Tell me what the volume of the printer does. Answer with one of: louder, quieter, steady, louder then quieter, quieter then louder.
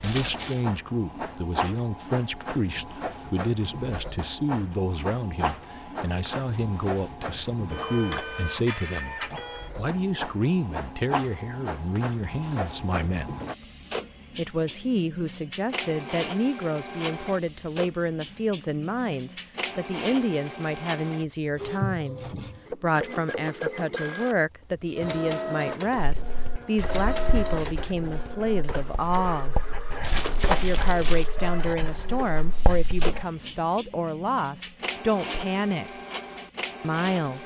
steady.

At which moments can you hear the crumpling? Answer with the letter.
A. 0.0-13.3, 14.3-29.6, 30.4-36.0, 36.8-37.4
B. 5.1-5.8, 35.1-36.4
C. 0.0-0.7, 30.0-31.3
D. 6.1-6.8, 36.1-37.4
C.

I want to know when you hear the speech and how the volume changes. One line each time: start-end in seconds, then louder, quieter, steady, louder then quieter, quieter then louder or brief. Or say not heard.
0.0-13.3 steady
14.3-29.6 steady
30.4-36.0 steady
36.8-37.4 brief.